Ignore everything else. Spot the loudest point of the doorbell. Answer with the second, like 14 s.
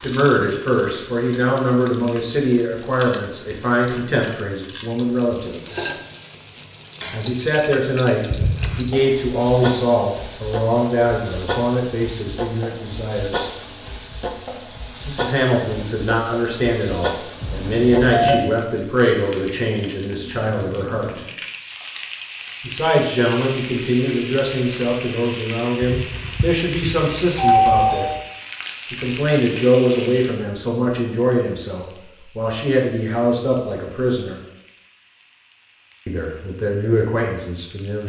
28 s.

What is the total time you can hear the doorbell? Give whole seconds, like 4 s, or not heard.
4 s.